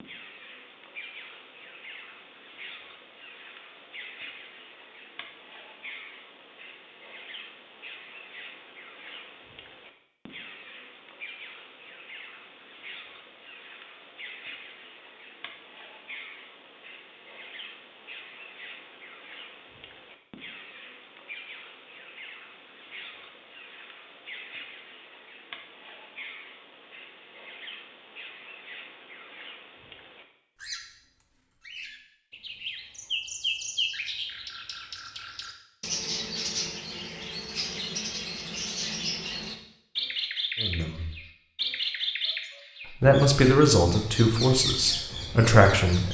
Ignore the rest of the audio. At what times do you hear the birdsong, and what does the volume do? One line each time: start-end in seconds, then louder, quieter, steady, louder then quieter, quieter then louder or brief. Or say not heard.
0.0-46.0 louder.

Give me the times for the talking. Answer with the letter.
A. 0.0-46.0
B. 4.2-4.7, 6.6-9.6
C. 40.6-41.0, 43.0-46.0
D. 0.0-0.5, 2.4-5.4
C.